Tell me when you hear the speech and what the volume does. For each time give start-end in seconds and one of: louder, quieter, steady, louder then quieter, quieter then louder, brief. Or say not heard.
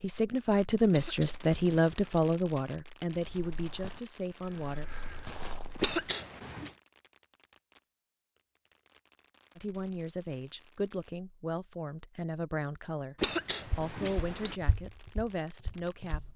0.0-4.8 quieter
9.6-16.3 steady.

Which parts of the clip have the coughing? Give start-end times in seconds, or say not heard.
0.9-2.3, 5.8-6.7, 13.2-14.6.